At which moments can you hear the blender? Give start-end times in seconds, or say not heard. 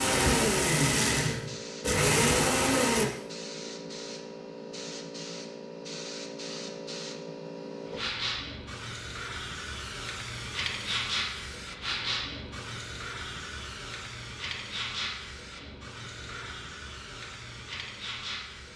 0.0-3.0.